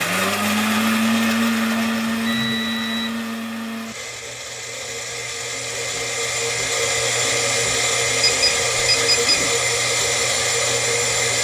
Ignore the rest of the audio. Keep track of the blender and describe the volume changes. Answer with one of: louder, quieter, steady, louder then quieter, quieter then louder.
quieter then louder.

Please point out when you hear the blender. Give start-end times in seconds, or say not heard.
0.0-11.4.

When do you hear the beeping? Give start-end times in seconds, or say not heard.
1.7-3.1, 8.2-9.3.